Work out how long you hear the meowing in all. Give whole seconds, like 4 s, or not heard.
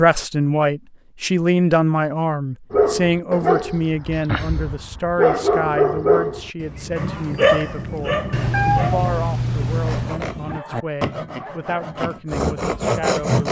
2 s.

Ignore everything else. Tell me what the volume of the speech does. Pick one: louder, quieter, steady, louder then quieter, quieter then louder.
quieter.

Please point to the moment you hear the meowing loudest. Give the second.
9 s.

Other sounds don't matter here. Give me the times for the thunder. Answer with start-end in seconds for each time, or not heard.
6.5-10.6.